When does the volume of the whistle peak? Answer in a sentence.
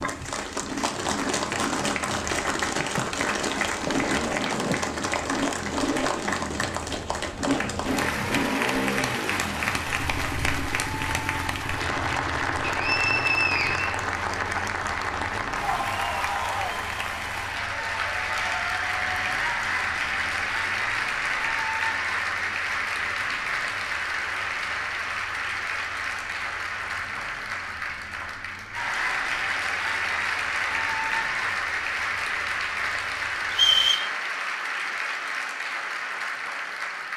The loudest moment of the whistle is at 34 seconds.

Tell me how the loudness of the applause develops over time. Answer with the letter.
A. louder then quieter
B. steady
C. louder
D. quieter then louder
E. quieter
B.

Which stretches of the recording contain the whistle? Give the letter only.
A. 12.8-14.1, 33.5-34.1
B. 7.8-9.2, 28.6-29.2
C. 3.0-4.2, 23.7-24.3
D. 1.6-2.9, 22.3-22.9
A.